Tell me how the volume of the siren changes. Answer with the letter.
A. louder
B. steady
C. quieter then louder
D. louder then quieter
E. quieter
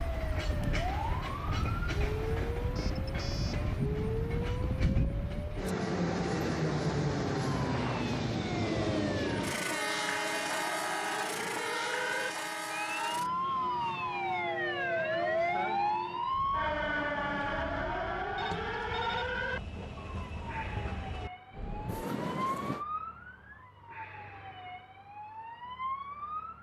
D.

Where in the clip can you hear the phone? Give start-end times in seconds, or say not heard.
2.8-3.7, 14.4-14.8, 18.4-19.2.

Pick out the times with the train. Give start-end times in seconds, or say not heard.
0.0-22.9.